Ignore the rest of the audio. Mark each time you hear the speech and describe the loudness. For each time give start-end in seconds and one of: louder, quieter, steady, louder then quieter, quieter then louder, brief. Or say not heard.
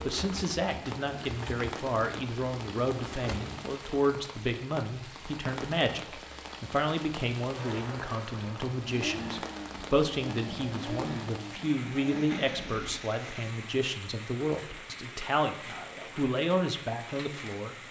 0.0-17.8 steady.